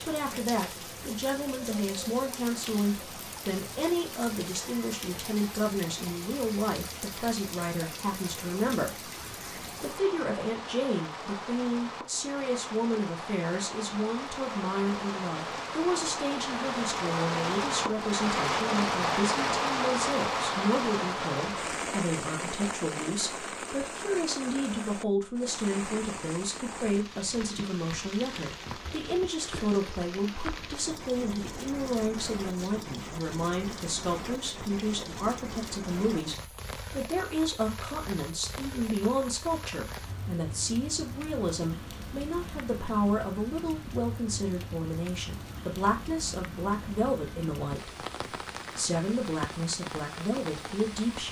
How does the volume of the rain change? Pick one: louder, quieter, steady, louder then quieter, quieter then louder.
louder then quieter.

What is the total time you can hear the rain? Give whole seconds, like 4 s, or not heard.
51 s.